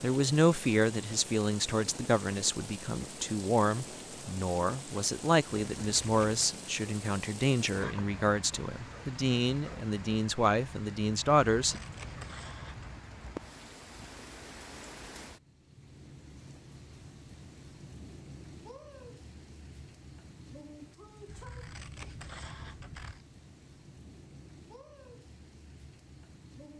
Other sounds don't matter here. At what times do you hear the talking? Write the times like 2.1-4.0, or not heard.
0.0-11.8.